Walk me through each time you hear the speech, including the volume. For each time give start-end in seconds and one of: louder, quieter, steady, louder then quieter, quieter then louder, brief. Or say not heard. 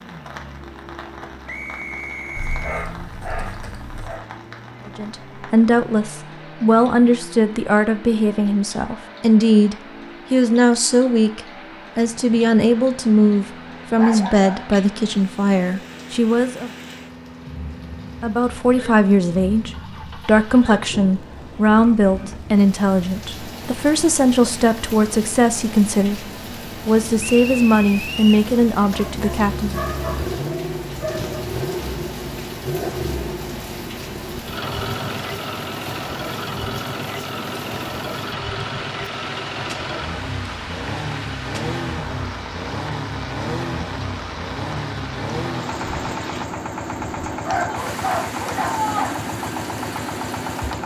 4.8-16.7 steady
18.2-29.8 steady.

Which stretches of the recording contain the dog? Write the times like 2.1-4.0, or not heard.
2.4-4.2, 13.8-15.2, 28.9-31.4, 47.4-49.1.